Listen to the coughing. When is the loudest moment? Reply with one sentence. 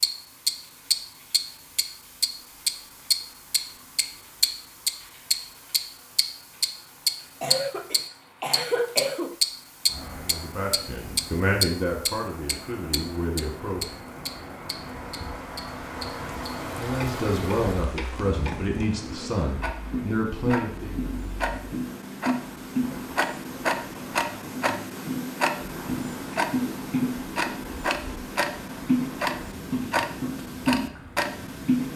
The loudest moment of the coughing is at 9 seconds.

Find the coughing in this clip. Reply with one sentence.
You can hear the coughing from 7.4 to 9.3 s.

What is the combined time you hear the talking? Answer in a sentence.
The talking can be heard for 8 seconds in total.